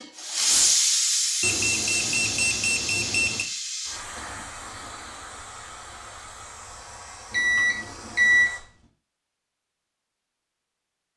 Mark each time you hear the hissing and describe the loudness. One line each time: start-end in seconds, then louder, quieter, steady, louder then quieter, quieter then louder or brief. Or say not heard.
0.0-8.8 quieter.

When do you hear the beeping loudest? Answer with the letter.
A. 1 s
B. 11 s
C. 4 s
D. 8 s
D.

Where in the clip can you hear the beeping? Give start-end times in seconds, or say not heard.
1.4-3.5, 7.3-8.5.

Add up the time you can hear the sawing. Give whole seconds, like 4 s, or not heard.
not heard.